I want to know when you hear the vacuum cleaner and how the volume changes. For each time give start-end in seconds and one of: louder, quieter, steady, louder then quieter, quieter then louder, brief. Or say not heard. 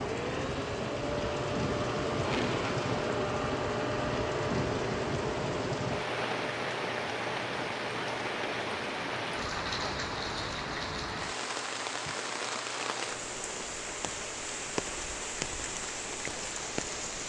0.0-17.2 quieter.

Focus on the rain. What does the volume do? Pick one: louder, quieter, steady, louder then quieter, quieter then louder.
steady.